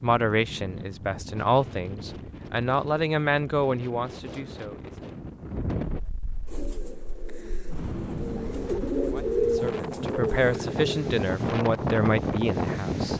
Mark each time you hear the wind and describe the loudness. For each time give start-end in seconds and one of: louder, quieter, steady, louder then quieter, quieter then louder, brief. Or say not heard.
0.0-13.1 louder.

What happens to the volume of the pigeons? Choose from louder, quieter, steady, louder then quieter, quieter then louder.
louder then quieter.